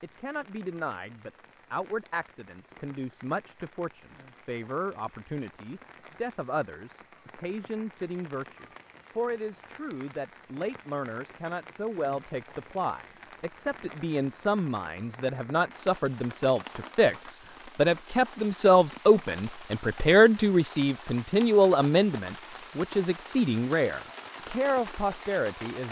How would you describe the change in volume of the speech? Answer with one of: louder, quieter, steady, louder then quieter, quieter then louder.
louder.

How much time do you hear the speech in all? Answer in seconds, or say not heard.
26 s.